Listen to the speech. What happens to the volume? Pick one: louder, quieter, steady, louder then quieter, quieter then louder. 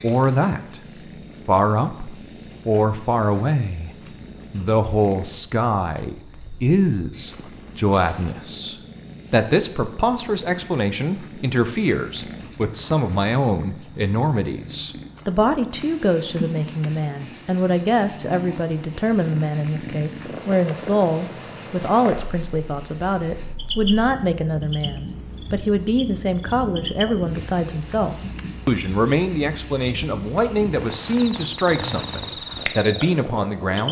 steady.